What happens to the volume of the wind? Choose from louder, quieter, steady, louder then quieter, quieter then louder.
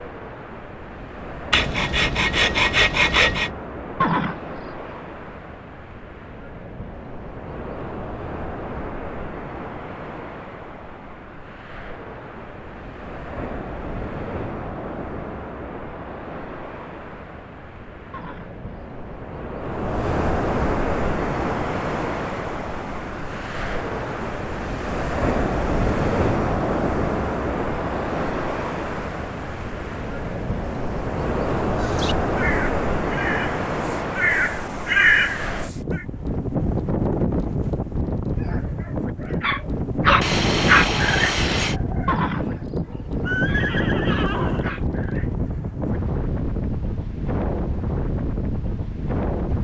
louder.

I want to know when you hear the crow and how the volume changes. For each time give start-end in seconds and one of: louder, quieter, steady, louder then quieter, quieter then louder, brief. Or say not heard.
31.8-36.0 louder.